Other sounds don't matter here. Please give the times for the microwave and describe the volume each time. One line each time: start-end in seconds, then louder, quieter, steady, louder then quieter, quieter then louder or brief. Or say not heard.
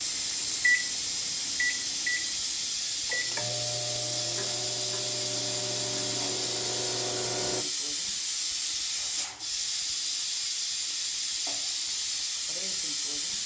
0.1-7.7 quieter.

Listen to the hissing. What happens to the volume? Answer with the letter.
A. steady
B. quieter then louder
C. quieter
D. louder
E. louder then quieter
A.